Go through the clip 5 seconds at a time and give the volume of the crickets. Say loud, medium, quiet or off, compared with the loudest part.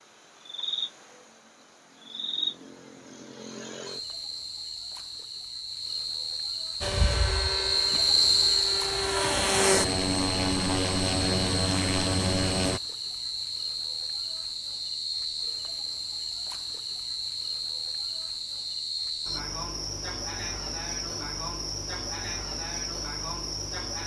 medium, loud, medium, medium, medium.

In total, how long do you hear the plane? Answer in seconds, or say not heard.
6 s.